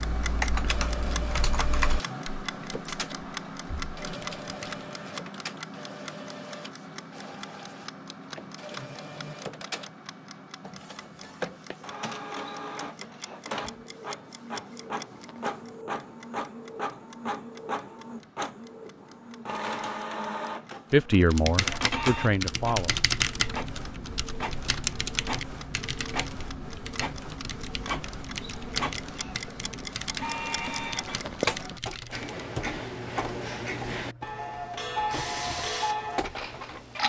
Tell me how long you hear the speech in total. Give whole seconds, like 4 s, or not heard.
2 s.